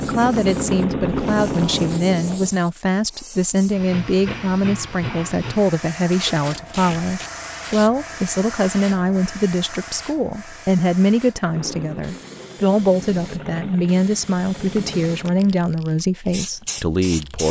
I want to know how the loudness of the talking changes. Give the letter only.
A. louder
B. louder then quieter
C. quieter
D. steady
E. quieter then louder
D.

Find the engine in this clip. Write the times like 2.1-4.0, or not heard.
0.0-2.0, 11.5-15.6.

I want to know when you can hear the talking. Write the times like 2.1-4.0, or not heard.
0.0-17.4.